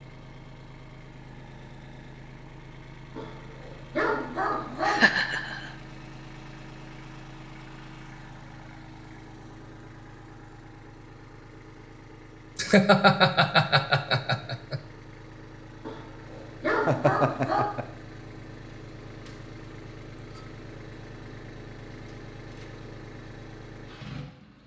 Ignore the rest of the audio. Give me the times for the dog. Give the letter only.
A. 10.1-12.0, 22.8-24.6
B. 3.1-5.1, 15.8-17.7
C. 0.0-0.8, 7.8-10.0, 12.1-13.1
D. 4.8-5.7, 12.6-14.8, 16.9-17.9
B.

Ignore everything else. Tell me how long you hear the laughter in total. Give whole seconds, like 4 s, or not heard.
4 s.